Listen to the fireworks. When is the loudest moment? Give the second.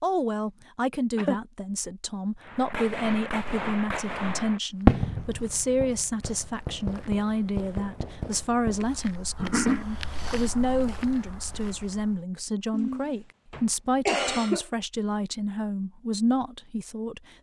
5 s.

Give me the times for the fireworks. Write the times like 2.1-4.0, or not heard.
2.4-8.8.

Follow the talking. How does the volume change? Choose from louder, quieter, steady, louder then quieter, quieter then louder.
steady.